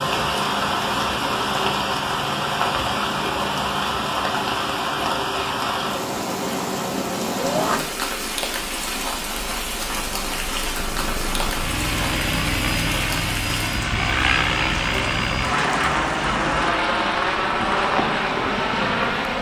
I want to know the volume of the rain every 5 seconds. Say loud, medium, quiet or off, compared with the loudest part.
loud, loud, medium, medium.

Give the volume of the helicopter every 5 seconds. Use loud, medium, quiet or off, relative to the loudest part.
quiet, quiet, loud, loud.